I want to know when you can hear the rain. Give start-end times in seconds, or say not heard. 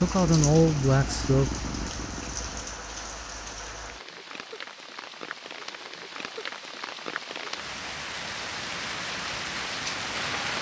0.0-10.5.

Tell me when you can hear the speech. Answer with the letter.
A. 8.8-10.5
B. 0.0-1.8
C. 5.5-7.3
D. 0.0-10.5
B.